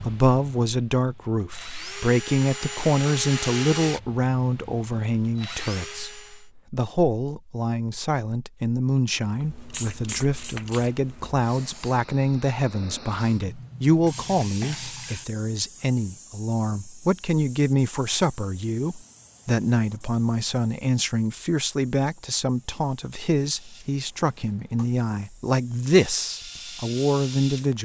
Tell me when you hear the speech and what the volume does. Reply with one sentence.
The speech can be heard from 0.0 to 27.7 s, at a steady volume.